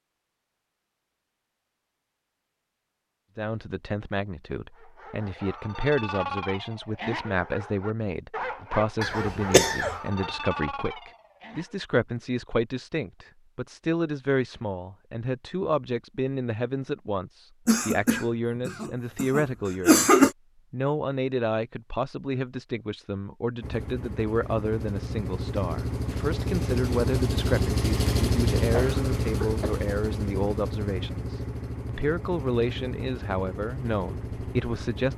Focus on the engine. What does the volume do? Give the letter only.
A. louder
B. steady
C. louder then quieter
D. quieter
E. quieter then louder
C.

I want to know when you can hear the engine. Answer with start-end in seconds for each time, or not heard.
23.6-35.1.